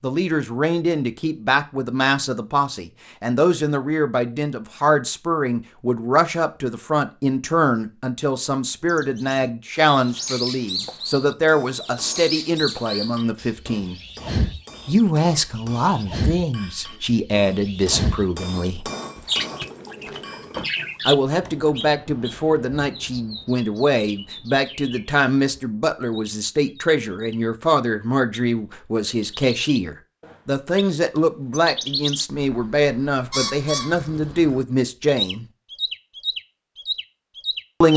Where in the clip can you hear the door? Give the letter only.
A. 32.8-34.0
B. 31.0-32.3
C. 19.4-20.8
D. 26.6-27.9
C.